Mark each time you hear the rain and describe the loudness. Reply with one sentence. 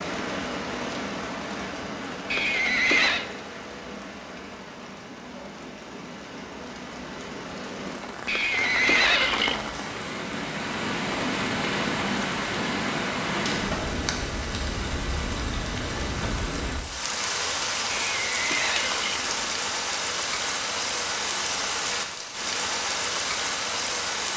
You can hear the rain from 0.0 to 24.3 s, getting louder.